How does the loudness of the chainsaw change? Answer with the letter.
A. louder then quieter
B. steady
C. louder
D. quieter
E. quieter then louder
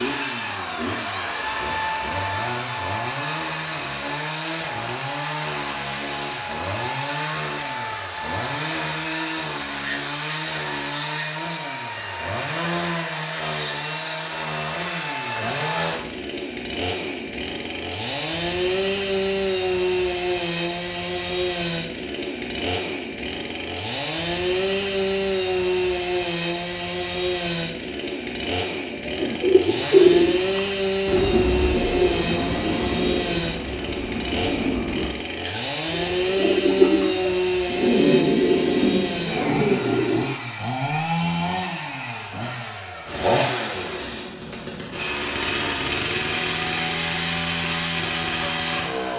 B.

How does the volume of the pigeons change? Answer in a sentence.
The volume of the pigeons goes down, then up.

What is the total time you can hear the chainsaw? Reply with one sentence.
You can hear the chainsaw for 49 seconds altogether.